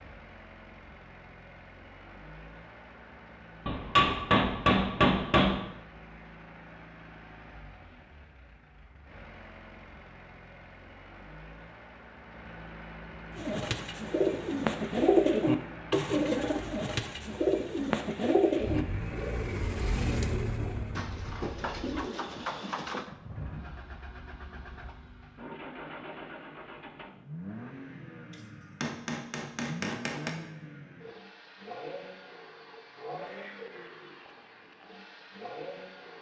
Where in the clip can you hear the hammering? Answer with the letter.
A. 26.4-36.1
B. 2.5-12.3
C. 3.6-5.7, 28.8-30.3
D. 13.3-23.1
C.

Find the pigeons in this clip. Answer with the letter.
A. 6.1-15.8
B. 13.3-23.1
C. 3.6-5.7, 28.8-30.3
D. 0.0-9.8
B.